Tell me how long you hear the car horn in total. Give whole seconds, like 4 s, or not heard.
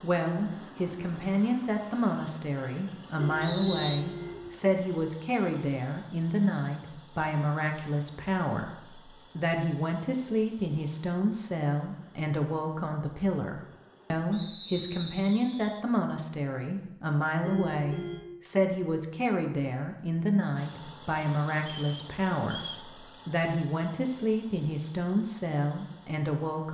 2 s.